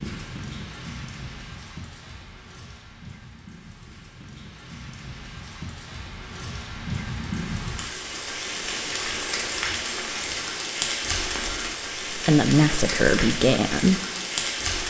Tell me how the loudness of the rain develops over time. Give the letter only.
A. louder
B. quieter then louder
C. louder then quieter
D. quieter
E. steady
A.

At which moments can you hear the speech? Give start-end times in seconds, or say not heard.
12.1-14.0.